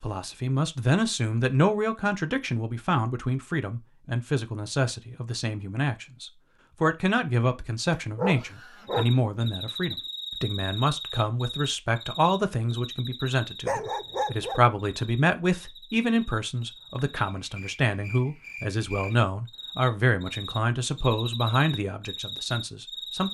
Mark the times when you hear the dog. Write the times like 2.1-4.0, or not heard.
7.9-9.5, 13.7-14.6.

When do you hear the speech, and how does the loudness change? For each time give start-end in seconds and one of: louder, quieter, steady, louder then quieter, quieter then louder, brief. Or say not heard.
0.0-23.2 steady.